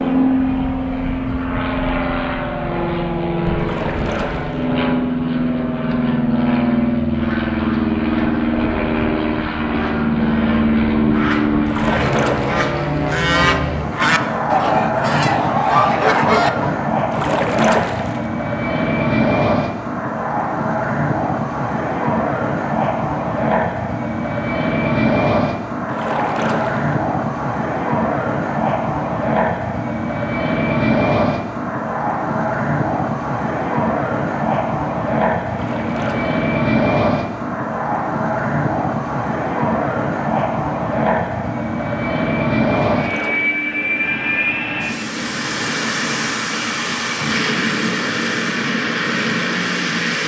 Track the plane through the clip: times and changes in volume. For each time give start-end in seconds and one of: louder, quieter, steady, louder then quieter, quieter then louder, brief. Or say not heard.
0.0-50.2 steady.